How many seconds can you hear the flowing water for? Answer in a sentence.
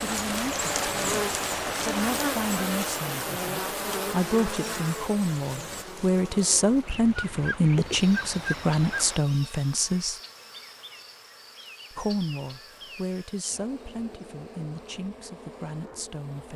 You can hear the flowing water for 9 seconds altogether.